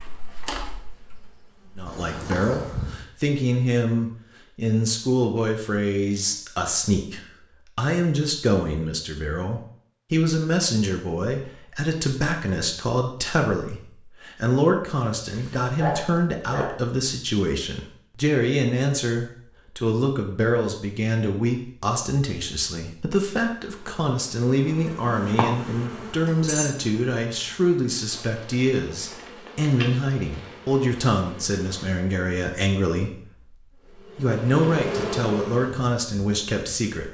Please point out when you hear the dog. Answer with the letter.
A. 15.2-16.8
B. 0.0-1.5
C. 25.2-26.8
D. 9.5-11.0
A.